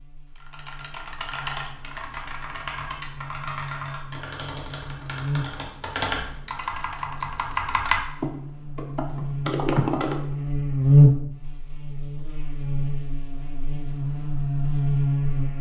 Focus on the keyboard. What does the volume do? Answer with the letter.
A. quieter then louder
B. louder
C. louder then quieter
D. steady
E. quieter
B.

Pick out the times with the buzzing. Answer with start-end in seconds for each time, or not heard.
0.0-15.5.